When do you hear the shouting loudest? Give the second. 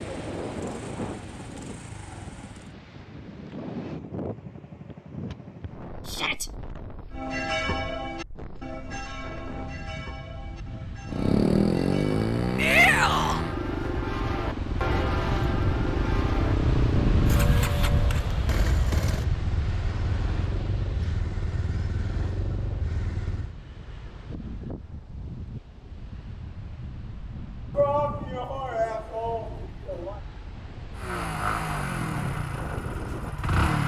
13 s.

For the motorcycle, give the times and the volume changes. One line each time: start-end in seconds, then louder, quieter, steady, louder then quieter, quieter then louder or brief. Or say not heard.
0.0-2.8 brief
11.1-23.6 quieter
30.9-33.8 brief.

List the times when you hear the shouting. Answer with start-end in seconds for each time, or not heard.
6.0-6.5, 12.6-13.4, 27.8-30.2.